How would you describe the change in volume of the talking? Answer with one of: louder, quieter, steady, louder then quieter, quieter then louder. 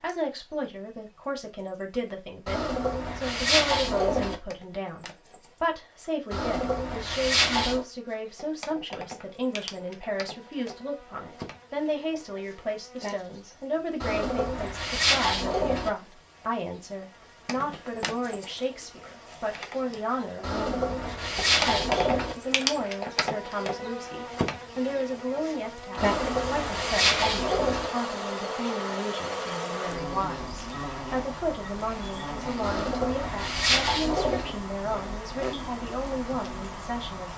steady.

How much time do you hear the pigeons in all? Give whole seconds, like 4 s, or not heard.
11 s.